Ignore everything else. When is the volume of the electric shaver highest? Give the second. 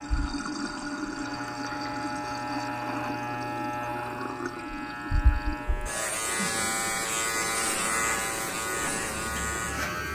8 s.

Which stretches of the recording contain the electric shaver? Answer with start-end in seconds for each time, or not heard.
0.0-10.0.